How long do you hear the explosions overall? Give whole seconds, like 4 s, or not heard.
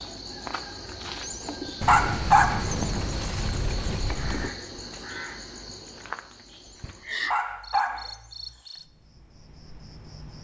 3 s.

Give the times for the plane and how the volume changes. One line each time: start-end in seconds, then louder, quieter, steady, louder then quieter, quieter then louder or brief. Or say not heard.
not heard.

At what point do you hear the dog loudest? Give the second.
2 s.